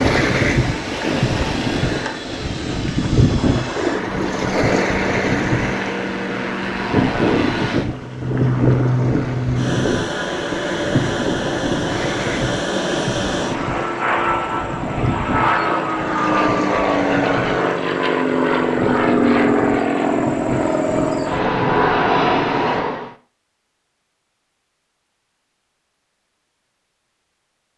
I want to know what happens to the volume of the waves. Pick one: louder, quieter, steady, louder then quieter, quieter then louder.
quieter.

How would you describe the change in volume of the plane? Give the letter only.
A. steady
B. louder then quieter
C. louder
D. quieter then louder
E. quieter
C.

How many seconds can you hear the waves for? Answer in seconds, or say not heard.
23 s.